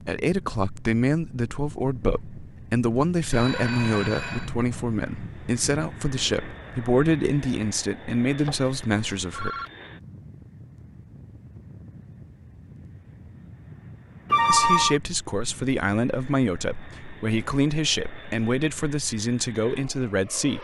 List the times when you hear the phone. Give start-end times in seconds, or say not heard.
3.3-4.5, 8.3-9.7, 14.3-15.0.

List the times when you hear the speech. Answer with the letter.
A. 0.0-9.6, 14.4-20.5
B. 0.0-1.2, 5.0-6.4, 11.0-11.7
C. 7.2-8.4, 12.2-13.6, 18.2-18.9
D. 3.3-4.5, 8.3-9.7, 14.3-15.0
A.